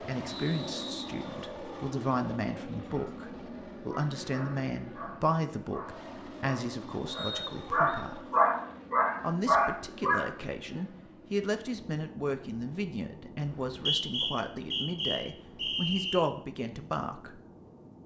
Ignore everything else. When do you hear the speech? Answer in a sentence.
You can hear the speech from 0.0 to 8.3 s and from 9.2 to 17.4 s.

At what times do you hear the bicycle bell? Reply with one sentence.
The bicycle bell can't be heard in this clip.